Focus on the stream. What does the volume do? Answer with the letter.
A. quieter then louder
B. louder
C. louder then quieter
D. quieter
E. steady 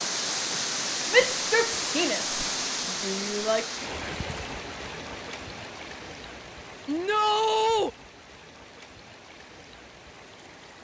D.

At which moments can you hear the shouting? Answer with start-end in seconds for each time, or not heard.
1.1-2.2, 3.0-3.6, 6.8-7.9.